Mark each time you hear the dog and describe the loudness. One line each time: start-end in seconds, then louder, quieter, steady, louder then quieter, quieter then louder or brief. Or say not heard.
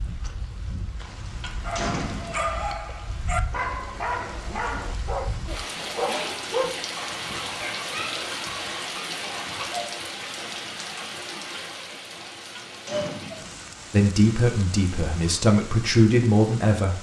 1.6-9.7 quieter.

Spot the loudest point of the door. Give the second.
2 s.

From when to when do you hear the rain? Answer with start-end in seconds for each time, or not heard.
0.0-16.9.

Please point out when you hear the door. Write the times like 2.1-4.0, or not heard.
1.0-2.5, 12.1-13.6.